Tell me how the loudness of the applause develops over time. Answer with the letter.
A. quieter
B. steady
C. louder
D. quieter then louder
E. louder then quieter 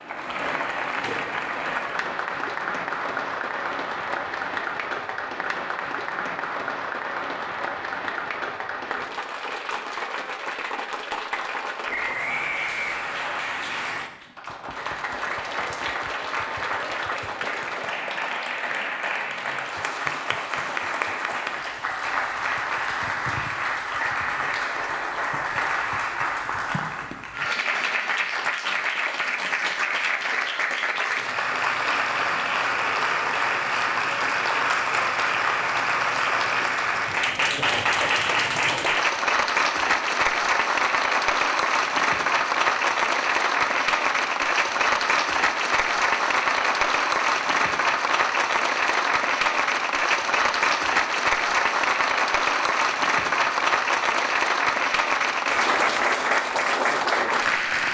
C.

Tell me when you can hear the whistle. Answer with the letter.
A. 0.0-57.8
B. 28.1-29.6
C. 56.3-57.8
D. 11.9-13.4
D.